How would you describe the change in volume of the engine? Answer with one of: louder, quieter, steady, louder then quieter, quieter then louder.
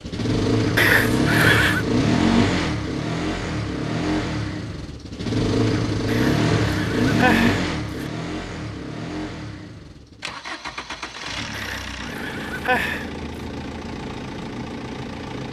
quieter.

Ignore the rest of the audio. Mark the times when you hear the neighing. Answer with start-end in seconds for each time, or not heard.
0.8-1.9, 6.0-8.1, 11.5-13.1.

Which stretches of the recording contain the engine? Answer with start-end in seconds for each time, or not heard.
0.0-15.4.